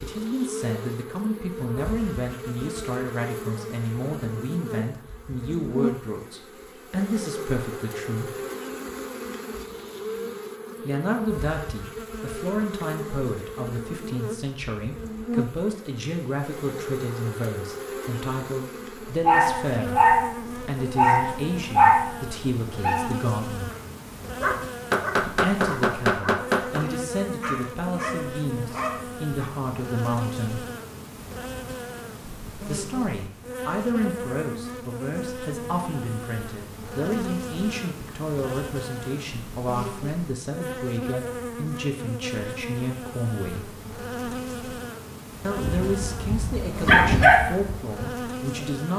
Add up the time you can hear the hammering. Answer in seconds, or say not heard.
2 s.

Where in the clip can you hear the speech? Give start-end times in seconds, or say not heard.
0.0-8.3, 10.8-23.7, 25.2-30.6, 32.6-43.8, 45.4-48.9.